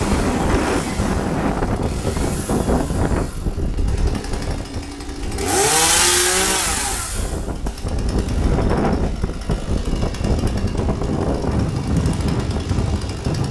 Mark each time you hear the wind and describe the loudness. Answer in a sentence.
The wind can be heard from 0.0 to 13.4 s, getting quieter then louder.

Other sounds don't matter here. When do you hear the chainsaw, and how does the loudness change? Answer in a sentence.
The chainsaw can be heard from 0.0 to 13.4 s, getting louder then quieter.